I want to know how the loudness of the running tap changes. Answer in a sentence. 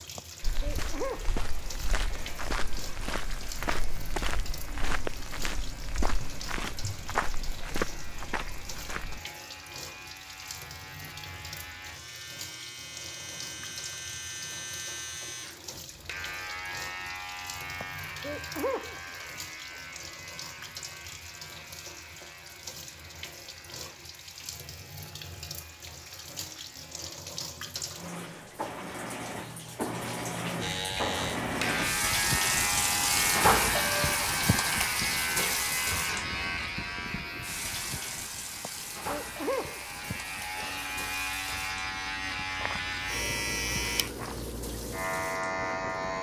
The volume of the running tap goes up, then down.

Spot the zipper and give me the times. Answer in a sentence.
The zipper can't be heard in this clip.